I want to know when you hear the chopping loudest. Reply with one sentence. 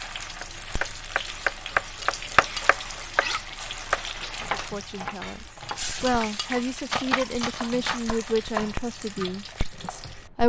The volume of the chopping peaks at 2 seconds.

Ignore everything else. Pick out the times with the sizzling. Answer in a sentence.
The sizzling can be heard from 0.0 to 10.4 s.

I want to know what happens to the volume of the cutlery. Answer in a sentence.
The loudness of the cutlery goes down, then up.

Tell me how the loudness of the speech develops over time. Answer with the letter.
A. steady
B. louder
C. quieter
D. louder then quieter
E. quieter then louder
D.